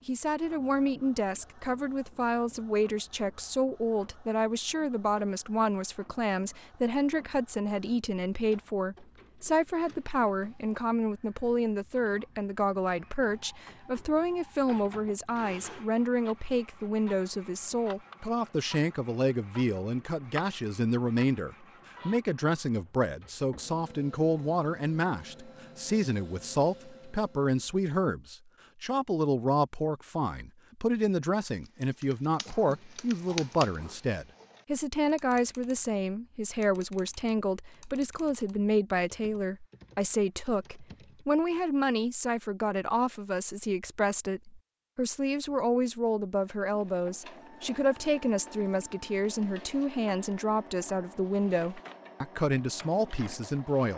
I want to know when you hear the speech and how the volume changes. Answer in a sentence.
You can hear the speech from 0.1 to 53.9 s, at a steady volume.